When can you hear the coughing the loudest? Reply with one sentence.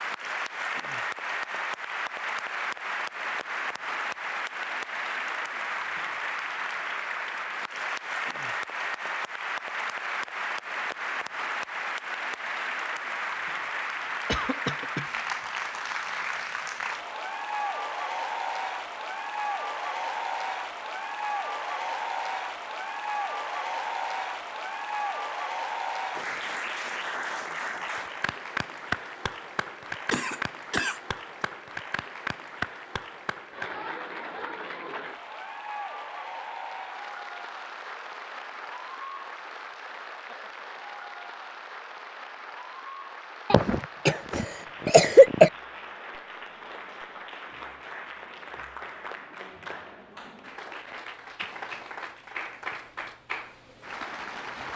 The volume of the coughing peaks at 45 seconds.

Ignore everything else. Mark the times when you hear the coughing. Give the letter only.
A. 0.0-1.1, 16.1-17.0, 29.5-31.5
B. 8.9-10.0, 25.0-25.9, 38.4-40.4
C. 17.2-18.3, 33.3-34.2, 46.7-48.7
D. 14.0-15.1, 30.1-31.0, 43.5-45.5
D.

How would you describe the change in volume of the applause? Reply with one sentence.
The volume of the applause goes down.